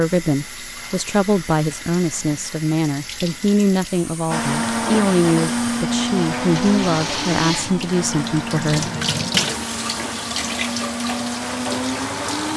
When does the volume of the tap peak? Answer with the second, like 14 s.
9 s.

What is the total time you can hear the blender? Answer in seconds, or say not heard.
8 s.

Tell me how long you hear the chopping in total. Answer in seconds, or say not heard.
not heard.